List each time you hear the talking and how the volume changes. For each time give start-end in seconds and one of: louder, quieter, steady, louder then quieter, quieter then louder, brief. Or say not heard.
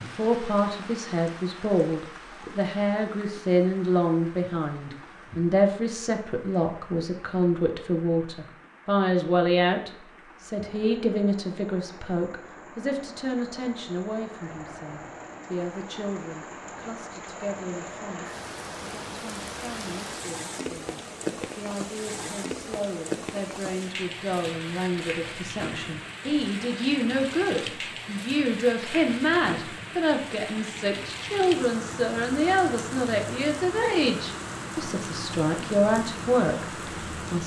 0.0-37.4 quieter then louder.